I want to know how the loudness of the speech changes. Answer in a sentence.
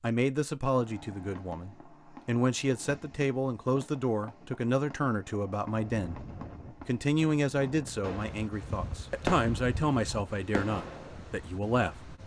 The volume of the speech stays about the same.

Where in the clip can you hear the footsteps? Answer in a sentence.
You can't hear the footsteps here.